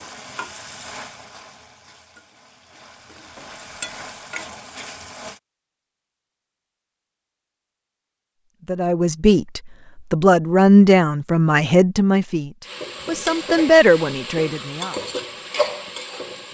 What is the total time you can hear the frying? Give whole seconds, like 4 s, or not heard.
9 s.